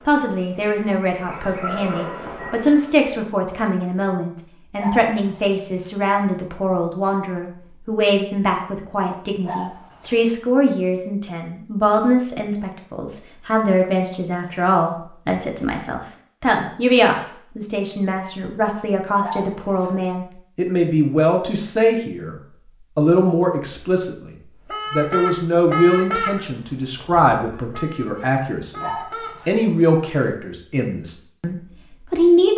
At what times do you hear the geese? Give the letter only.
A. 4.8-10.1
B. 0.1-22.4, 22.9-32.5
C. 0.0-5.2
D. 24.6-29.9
D.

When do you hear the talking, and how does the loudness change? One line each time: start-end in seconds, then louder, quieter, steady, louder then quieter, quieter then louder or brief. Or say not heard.
0.1-22.4 steady
22.9-32.5 quieter.